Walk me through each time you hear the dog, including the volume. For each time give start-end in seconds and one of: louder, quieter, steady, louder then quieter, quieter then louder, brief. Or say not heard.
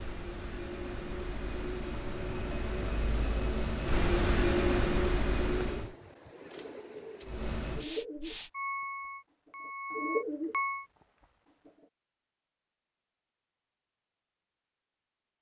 not heard.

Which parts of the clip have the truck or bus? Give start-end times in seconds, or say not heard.
0.0-6.0, 7.2-10.8.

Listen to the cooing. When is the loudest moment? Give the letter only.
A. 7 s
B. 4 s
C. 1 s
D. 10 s
D.